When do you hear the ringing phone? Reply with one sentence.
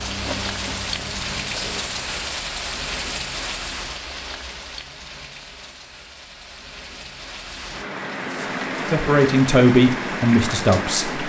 The ringing phone can't be heard in this clip.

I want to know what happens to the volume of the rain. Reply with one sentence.
The volume of the rain goes down, then up.